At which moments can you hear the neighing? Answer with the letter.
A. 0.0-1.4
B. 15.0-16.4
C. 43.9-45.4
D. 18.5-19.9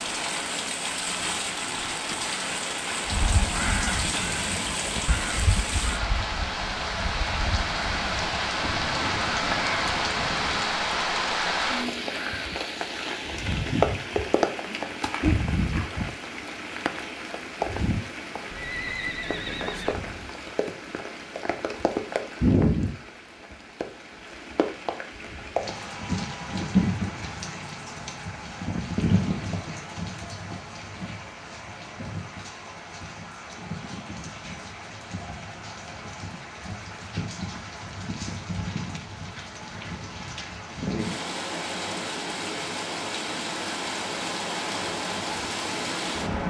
D.